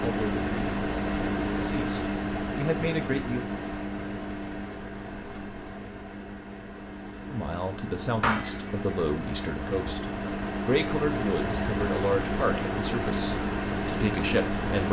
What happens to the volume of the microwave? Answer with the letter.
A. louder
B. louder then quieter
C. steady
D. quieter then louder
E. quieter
D.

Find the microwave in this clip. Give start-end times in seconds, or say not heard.
0.0-14.8.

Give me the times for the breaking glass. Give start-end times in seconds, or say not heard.
8.2-9.0.